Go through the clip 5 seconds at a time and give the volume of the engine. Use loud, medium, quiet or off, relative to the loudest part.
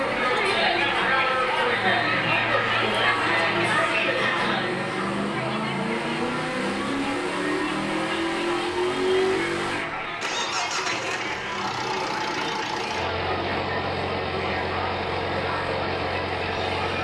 medium, loud, loud, loud.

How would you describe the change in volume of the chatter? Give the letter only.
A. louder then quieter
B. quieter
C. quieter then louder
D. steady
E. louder
B.